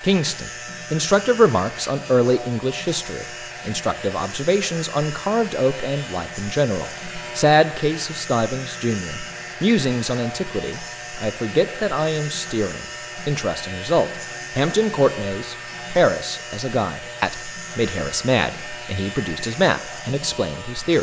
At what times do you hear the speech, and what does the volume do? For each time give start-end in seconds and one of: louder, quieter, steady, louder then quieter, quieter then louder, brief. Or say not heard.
0.0-20.9 steady.